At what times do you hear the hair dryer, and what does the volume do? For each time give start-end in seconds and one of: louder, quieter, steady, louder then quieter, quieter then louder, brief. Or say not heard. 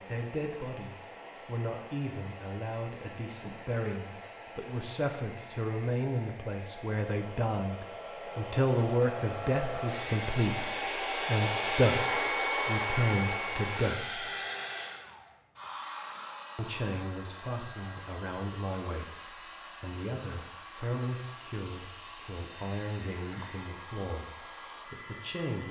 0.0-25.6 louder then quieter.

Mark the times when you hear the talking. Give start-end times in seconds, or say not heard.
0.1-14.2, 16.6-25.6.